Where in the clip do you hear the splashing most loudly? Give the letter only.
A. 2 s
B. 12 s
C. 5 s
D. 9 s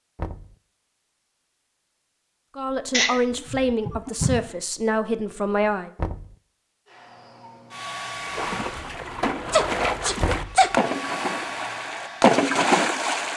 B.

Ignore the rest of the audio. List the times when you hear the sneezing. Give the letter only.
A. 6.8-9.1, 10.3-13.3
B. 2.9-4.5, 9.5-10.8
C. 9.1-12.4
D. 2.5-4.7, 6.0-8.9
B.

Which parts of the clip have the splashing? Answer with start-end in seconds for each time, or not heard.
8.2-13.3.